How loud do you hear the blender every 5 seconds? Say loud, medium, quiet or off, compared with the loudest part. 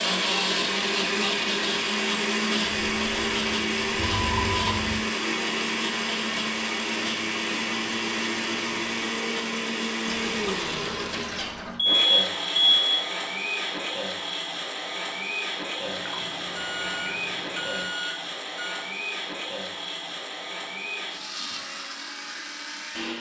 loud, loud, medium, medium, medium.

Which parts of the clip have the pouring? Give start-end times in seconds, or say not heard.
2.9-4.0, 10.1-11.8, 15.8-17.9.